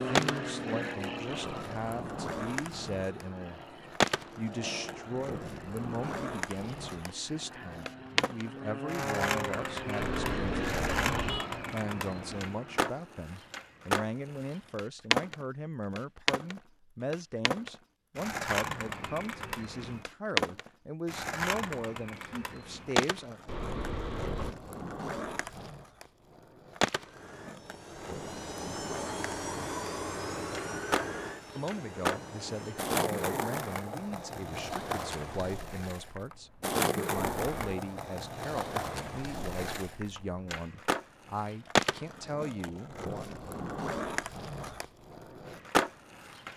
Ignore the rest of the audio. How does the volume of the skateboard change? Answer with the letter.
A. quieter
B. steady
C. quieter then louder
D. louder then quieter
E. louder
B.